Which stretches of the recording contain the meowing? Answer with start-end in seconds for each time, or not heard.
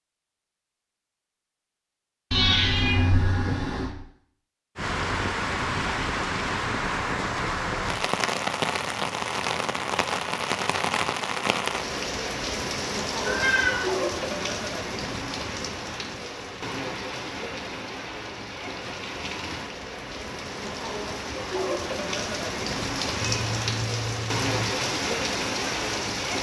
2.3-3.9, 13.2-13.8, 23.2-24.8.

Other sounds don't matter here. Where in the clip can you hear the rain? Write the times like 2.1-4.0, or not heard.
4.8-26.3.